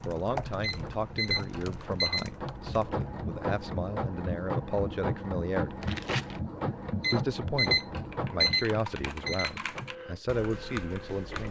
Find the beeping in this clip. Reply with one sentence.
The beeping can be heard from 0.6 to 2.7 s and from 7.0 to 9.5 s.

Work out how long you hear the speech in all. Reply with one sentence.
You can hear the speech for 10 seconds altogether.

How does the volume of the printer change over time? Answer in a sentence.
The loudness of the printer goes up, then down.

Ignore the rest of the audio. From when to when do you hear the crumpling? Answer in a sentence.
You can hear the crumpling from 1.4 to 1.8 s and from 5.8 to 6.4 s.